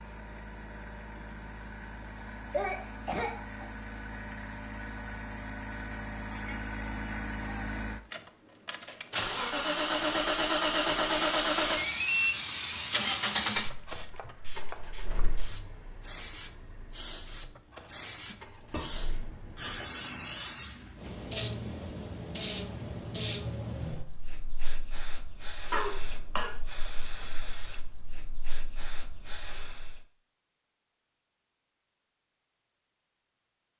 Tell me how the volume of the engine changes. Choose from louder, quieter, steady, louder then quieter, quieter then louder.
louder then quieter.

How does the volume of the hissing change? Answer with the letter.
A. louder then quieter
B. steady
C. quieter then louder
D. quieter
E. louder
D.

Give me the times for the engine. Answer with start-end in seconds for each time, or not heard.
0.0-19.8.